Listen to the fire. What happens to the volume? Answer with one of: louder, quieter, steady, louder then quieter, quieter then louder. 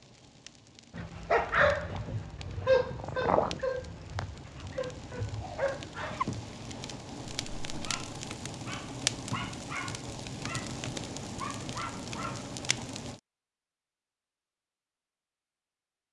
louder.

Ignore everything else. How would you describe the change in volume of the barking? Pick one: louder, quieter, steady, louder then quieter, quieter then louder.
quieter.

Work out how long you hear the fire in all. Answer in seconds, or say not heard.
13 s.